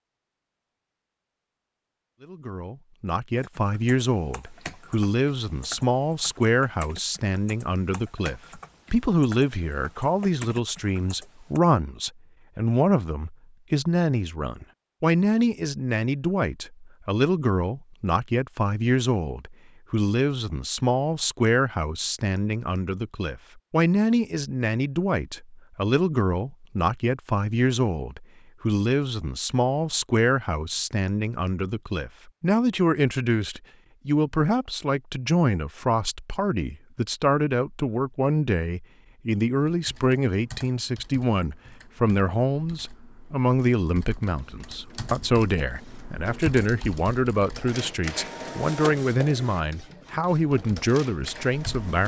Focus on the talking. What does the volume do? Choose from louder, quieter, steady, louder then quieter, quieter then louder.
steady.